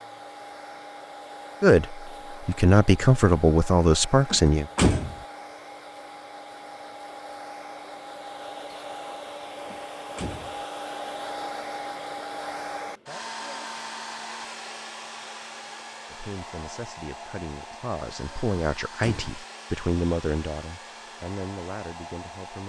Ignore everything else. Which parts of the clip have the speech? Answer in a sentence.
You can hear the speech from 1.6 to 4.7 s and from 16.1 to 22.6 s.